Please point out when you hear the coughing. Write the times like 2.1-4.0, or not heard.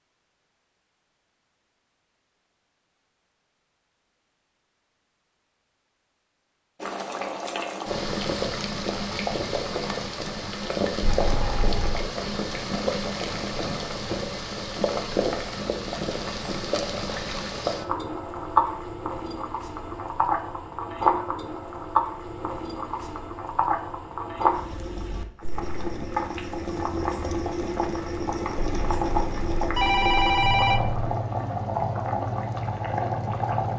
not heard.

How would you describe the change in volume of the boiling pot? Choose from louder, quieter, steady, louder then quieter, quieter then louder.
steady.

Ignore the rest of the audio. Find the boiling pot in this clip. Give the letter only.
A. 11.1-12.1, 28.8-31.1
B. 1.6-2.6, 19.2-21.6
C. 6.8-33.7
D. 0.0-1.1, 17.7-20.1
C.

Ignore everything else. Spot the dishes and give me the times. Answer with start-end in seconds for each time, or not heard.
not heard.